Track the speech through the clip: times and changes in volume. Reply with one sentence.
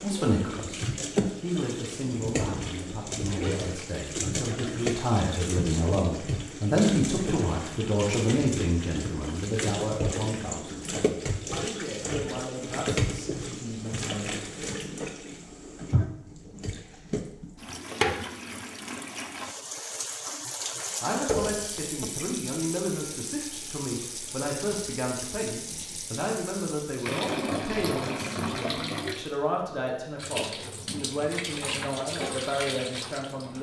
You can hear the speech briefly from 0.0 to 0.8 s; from 1.4 to 14.3 s, getting louder then quieter; and from 21.0 to 33.5 s, at a steady volume.